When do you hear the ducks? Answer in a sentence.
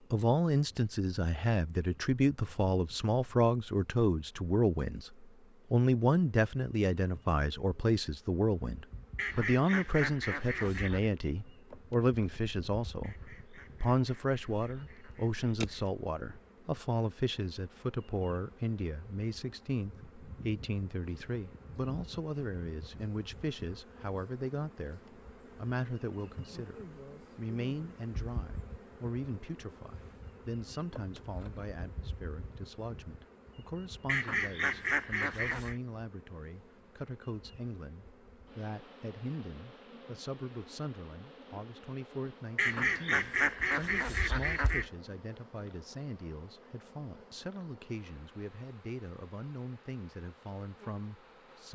You can hear the ducks from 9.2 to 11.1 s, from 13.0 to 15.8 s, from 34.0 to 35.8 s and from 42.5 to 44.9 s.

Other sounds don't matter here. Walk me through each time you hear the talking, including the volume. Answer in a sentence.
The talking can be heard from 0.1 to 51.7 s, getting quieter.